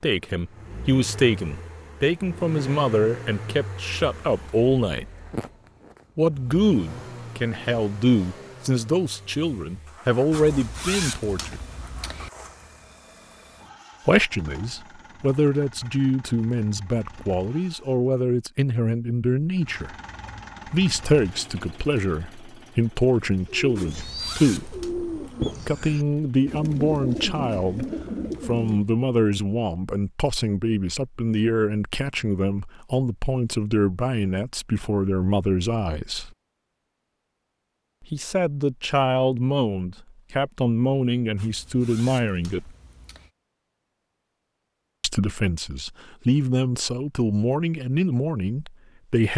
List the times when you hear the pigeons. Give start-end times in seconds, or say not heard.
23.4-28.9.